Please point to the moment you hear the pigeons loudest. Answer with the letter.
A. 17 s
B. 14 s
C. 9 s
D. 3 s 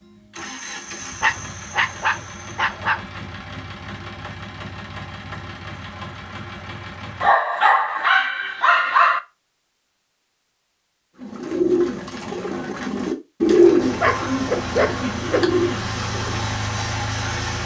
B.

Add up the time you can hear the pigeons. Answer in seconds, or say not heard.
5 s.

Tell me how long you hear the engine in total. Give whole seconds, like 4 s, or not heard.
11 s.